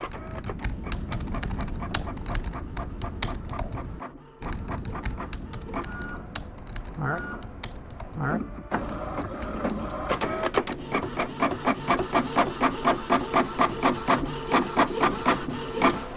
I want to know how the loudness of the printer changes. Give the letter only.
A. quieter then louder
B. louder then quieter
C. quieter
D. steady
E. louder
E.